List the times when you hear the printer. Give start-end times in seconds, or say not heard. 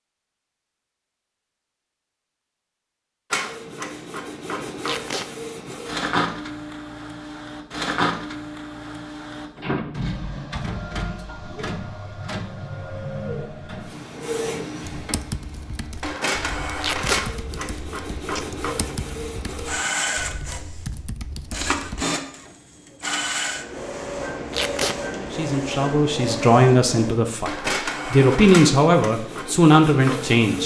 3.3-30.6.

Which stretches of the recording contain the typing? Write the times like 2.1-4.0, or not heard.
14.9-22.1.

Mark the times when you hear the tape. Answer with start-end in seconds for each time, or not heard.
4.8-5.3, 16.8-17.2, 24.5-24.9.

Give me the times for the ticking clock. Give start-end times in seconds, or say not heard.
not heard.